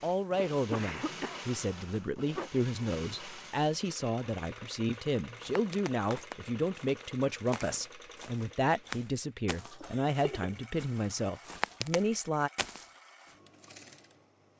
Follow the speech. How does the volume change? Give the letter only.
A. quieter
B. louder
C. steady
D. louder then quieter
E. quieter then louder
C.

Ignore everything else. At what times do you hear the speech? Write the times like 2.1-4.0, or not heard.
0.0-12.5.